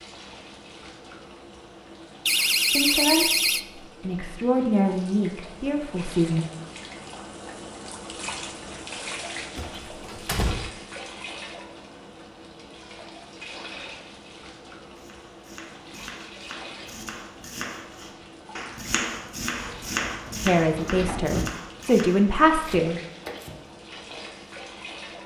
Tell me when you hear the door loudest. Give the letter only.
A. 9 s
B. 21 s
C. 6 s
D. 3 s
D.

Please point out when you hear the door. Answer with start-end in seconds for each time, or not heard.
2.2-3.6, 9.6-10.7, 19.6-21.6.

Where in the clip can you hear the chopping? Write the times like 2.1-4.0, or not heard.
14.9-24.4.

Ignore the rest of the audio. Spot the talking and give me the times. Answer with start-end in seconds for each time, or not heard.
2.7-6.5, 20.4-23.0.